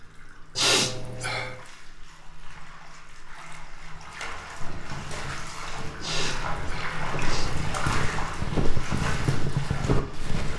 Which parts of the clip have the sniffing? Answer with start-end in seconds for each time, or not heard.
0.6-1.6, 6.0-7.6.